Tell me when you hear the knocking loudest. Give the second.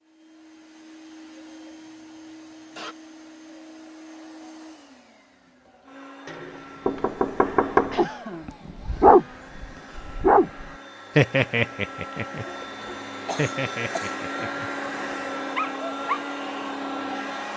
8 s.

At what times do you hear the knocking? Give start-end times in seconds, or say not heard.
6.2-8.1.